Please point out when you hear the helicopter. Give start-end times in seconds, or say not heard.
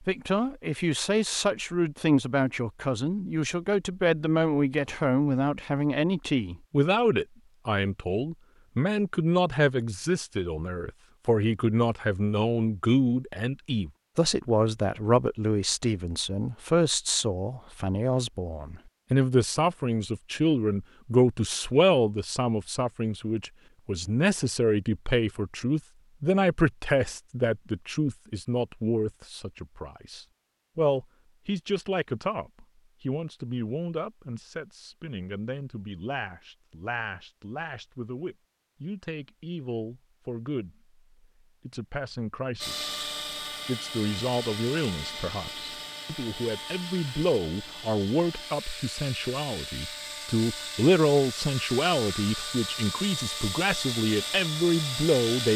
42.6-55.5.